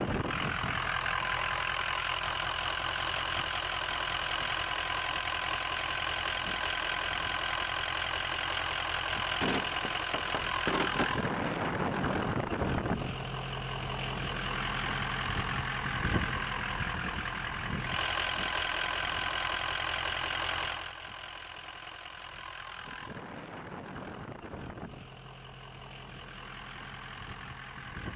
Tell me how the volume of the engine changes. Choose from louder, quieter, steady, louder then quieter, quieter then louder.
quieter.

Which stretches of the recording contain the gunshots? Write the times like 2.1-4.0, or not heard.
9.4-11.2.